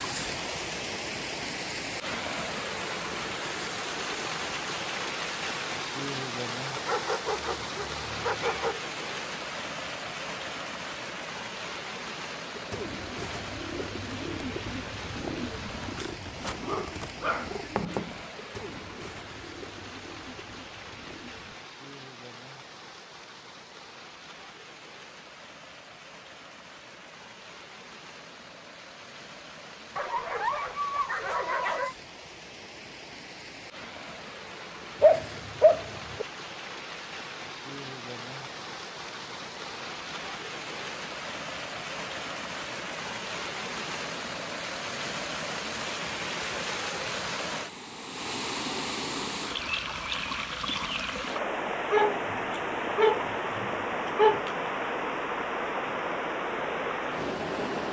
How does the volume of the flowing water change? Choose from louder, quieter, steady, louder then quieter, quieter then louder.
quieter then louder.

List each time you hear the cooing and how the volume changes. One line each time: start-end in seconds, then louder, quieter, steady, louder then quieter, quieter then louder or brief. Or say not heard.
12.5-21.6 quieter.